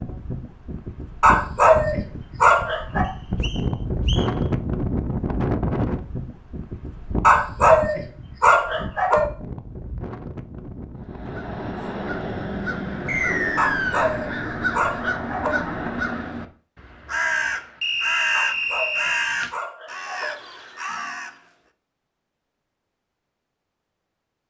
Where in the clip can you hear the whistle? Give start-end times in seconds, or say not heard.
3.0-4.3, 13.1-14.1, 17.8-19.4.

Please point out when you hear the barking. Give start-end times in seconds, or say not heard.
1.2-3.0, 7.2-9.2, 13.6-15.6, 18.3-20.4.